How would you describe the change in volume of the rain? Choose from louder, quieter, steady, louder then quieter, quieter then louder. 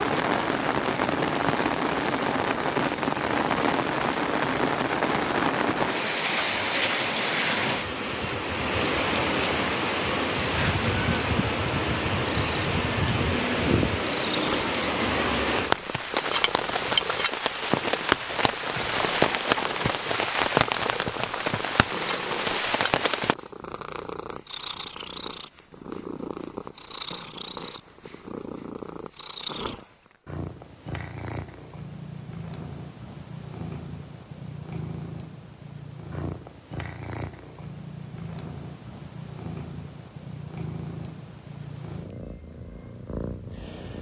steady.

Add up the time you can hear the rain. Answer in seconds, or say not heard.
23 s.